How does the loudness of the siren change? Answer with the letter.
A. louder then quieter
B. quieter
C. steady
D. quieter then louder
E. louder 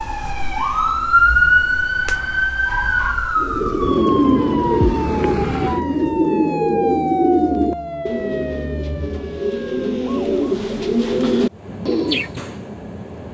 B.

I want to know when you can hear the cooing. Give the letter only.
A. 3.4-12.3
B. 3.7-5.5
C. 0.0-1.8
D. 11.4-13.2
A.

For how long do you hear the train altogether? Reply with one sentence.
The train can be heard for 2 seconds in total.